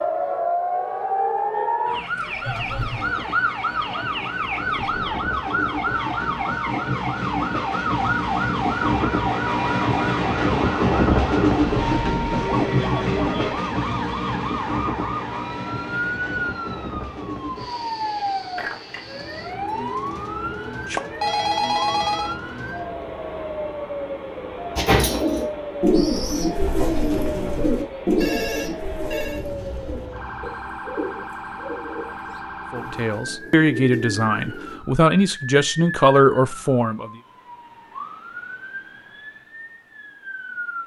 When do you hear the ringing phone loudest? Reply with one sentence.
The loudest moment of the ringing phone is at 22 seconds.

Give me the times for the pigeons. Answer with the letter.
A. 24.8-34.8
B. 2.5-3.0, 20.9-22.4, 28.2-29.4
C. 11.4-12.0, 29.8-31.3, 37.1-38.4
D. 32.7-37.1
A.